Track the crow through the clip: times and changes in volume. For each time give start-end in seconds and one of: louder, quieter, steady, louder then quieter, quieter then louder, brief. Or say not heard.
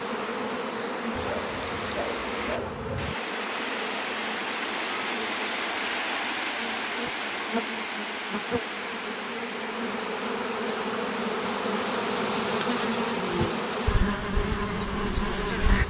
not heard.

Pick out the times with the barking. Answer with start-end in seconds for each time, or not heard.
1.1-3.1.